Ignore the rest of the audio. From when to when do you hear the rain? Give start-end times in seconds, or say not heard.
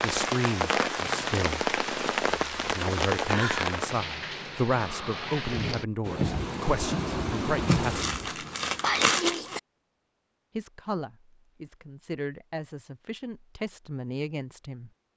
0.0-8.3.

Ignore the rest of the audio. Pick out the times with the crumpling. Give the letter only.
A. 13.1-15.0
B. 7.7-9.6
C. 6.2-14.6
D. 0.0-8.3
B.